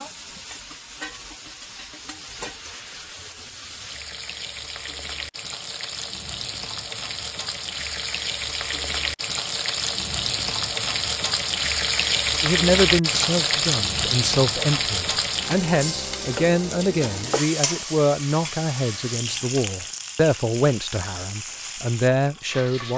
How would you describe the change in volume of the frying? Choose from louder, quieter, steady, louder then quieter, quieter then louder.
louder then quieter.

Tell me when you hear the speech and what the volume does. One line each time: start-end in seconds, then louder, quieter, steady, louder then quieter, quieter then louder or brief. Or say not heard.
12.4-22.9 steady.